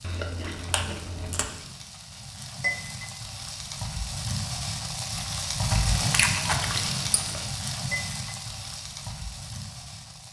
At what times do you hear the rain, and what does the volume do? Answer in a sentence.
You can hear the rain from 0.0 to 10.2 s, getting louder then quieter.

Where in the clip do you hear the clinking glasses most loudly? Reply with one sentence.
The loudest moment of the clinking glasses is at 3 seconds.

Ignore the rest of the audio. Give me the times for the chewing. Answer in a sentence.
You can hear the chewing from 0.0 to 1.6 s and from 5.7 to 7.4 s.